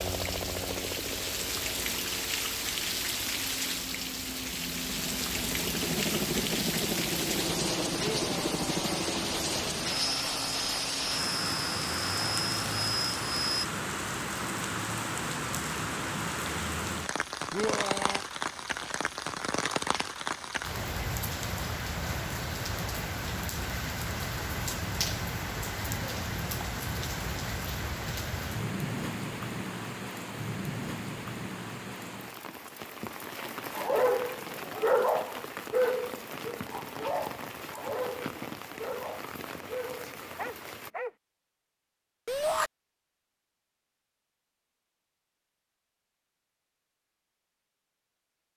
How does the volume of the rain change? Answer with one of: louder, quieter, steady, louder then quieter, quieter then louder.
quieter.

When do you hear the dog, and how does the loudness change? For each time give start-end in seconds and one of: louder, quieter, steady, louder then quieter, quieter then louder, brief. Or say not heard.
33.4-41.1 quieter.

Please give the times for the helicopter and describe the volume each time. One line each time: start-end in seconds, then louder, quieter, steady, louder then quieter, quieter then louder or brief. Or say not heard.
0.0-13.7 louder.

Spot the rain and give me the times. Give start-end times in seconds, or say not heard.
0.0-40.9.